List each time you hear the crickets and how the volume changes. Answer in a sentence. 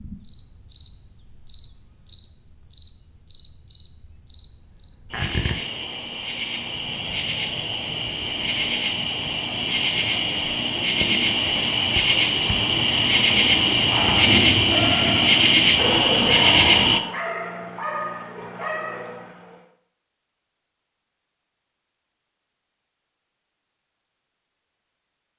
The crickets can be heard from 0.0 to 17.0 s, getting louder.